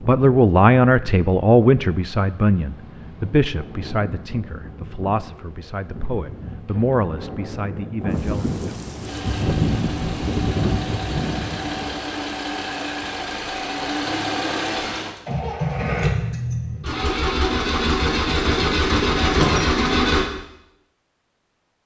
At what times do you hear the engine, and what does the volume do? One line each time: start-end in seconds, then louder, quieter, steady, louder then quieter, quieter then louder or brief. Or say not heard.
9.0-20.3 louder.